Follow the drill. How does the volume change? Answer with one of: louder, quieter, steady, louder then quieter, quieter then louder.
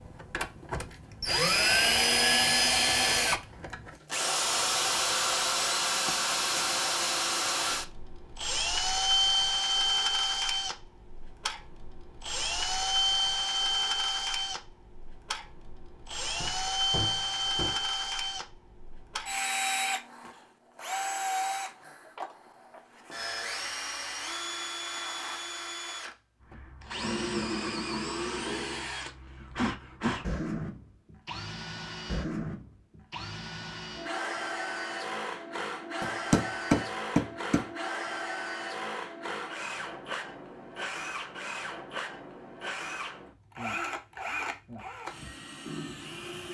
quieter.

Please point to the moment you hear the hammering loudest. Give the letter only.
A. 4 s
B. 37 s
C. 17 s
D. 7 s
B.